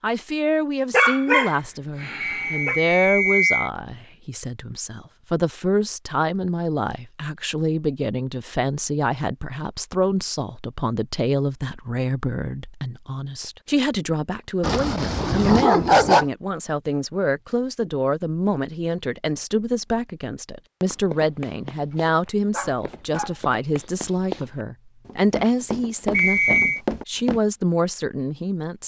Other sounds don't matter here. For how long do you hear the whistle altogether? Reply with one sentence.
The whistle can be heard for 2 seconds in total.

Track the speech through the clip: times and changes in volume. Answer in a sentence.
The speech can be heard from 0.0 to 28.8 s, at a steady volume.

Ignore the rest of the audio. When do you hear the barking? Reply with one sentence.
The barking can be heard from 0.9 to 2.8 s, from 14.6 to 16.2 s and from 22.5 to 23.3 s.